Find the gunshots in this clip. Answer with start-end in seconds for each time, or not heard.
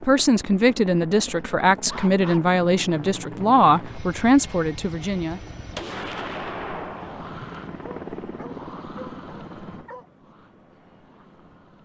5.8-7.4.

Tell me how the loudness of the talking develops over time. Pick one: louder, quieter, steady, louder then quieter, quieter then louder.
steady.